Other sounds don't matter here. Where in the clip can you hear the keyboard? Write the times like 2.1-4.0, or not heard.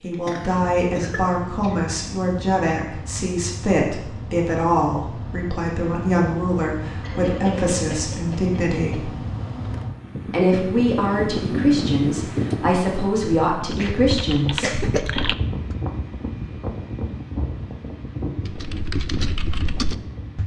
13.6-15.3, 18.4-20.4.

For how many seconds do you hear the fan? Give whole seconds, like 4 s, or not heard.
20 s.